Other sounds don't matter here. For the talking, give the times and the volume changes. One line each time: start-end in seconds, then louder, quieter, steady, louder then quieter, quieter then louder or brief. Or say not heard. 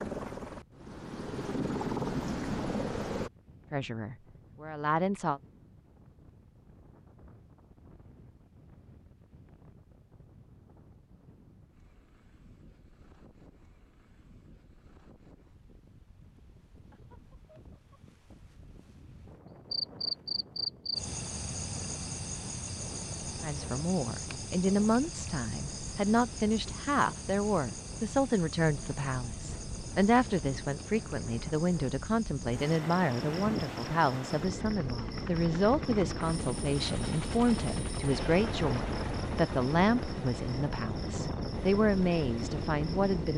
3.7-5.4 brief
23.4-43.3 steady.